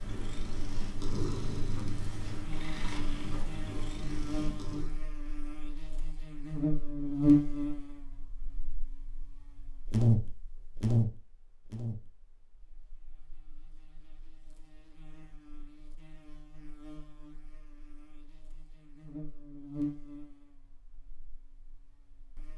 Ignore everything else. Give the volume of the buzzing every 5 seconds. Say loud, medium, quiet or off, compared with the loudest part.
medium, loud, loud, quiet, quiet.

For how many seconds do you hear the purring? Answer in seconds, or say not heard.
5 s.